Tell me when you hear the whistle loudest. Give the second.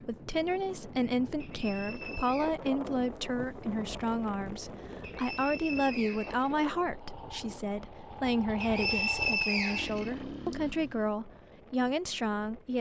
9 s.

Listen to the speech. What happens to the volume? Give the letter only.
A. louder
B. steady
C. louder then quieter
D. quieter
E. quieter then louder
B.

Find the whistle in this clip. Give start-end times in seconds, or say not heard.
1.4-2.5, 5.0-6.5, 8.6-10.6.